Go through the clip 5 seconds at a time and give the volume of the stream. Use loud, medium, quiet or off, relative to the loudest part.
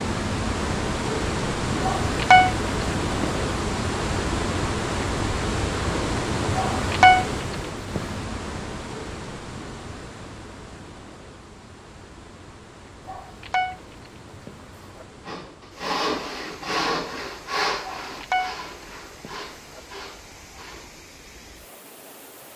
loud, loud, quiet, quiet, quiet.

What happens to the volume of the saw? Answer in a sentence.
The loudness of the saw goes down.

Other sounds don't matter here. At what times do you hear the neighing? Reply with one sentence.
The neighing can't be heard in this clip.